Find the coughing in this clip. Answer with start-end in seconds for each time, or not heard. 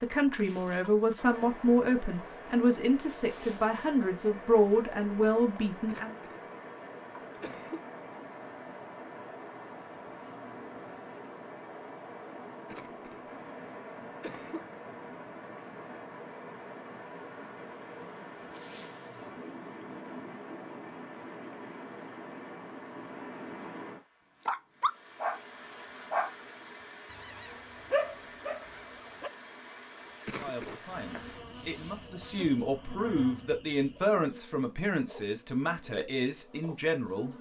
5.8-7.8, 12.7-14.7, 30.2-31.2.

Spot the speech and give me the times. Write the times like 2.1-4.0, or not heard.
0.0-6.2, 30.4-37.3.